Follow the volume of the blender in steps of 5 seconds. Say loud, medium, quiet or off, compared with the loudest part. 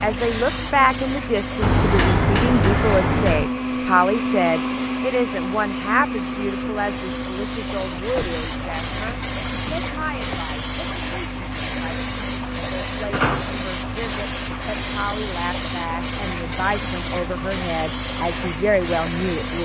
loud, loud, medium, medium.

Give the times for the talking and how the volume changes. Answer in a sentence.
The talking can be heard from 0.0 to 19.6 s, getting quieter then louder.